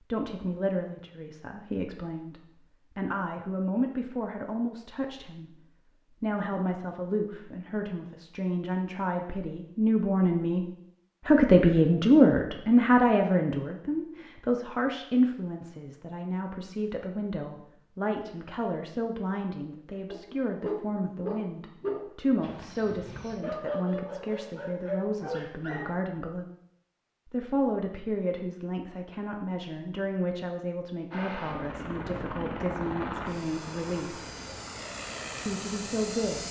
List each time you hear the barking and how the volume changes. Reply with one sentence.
The barking can be heard from 20.1 to 25.9 s, getting quieter then louder.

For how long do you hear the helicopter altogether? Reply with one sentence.
The helicopter can be heard for 5 seconds in total.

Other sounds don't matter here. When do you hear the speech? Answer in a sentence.
You can hear the speech from 0.1 to 5.6 s, from 6.2 to 10.7 s, from 11.2 to 26.4 s, from 27.2 to 34.4 s and from 35.5 to 36.4 s.